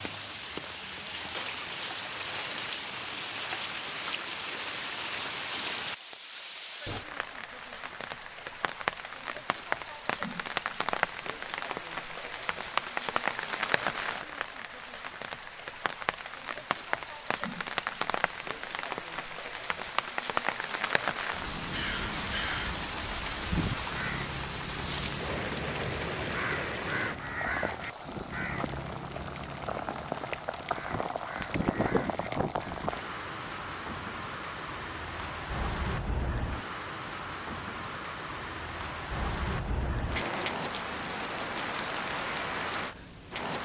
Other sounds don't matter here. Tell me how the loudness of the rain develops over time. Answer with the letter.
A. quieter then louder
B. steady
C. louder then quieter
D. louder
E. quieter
B.